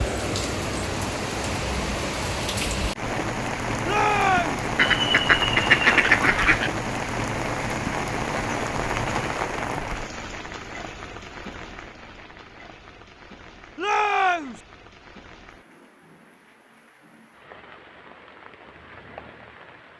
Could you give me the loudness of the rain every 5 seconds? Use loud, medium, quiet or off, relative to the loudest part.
loud, loud, quiet, quiet.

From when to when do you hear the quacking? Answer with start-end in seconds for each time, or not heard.
4.8-6.7.